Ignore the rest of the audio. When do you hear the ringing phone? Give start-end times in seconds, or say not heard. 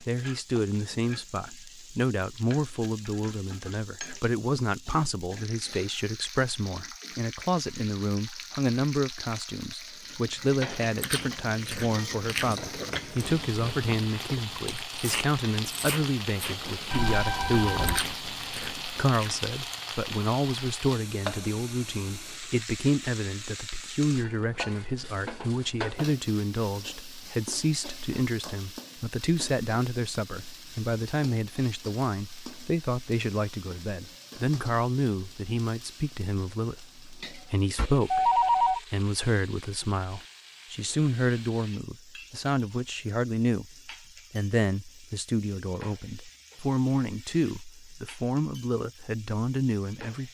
16.9-18.0, 37.8-38.8.